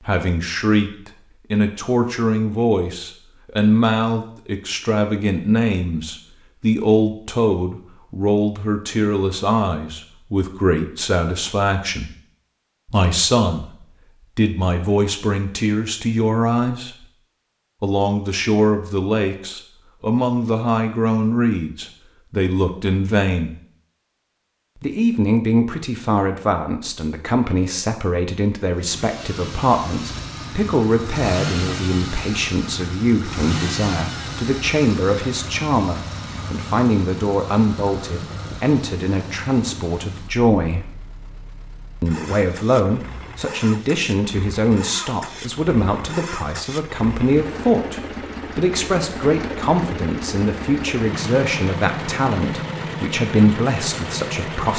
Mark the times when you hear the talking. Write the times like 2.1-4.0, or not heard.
0.0-12.2, 12.8-17.1, 17.8-23.5, 24.8-41.0, 42.0-54.7.